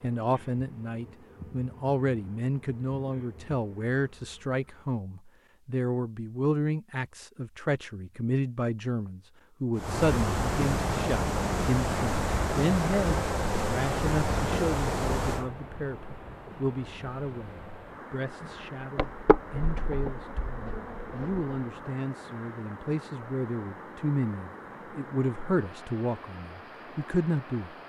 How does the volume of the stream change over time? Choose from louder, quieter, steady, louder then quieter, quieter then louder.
quieter.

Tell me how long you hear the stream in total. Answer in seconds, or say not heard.
18 s.